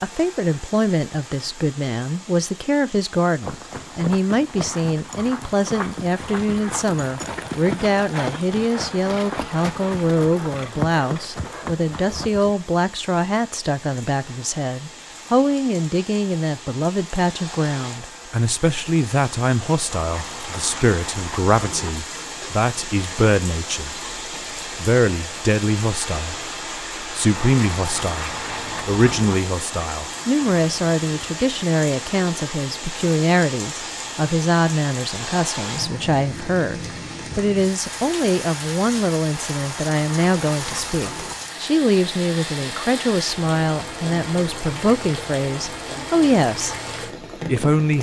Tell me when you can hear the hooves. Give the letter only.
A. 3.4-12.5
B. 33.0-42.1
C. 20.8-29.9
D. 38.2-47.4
A.